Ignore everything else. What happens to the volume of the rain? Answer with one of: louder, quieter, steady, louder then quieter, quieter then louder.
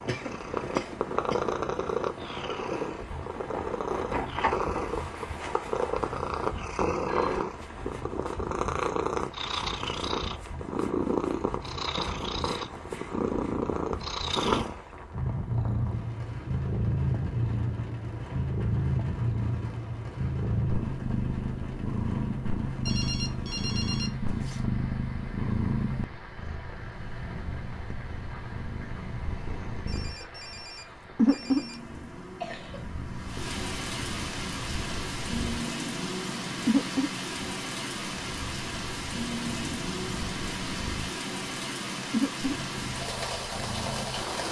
louder.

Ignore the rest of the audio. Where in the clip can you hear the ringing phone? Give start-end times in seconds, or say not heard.
7.0-7.5, 22.9-24.6, 29.9-31.8.